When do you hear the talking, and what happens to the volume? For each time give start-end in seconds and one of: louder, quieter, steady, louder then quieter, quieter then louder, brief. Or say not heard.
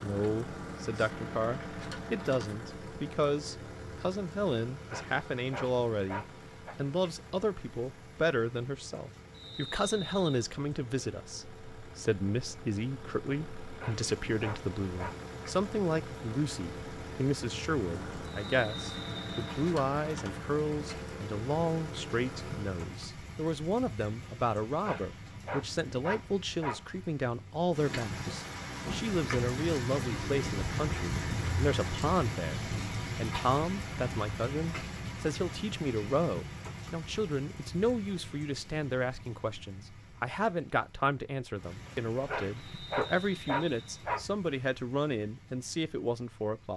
0.0-46.7 steady.